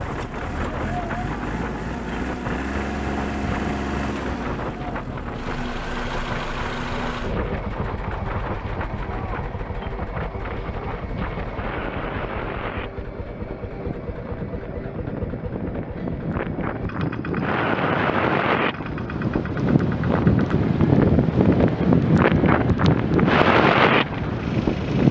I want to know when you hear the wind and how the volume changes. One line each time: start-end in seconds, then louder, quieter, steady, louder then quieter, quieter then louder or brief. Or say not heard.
0.0-25.0 louder.